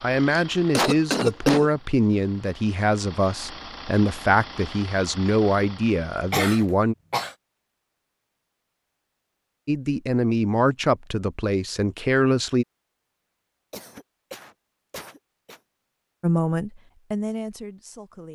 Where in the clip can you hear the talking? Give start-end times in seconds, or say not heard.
0.0-7.0, 9.7-12.7, 16.2-18.2.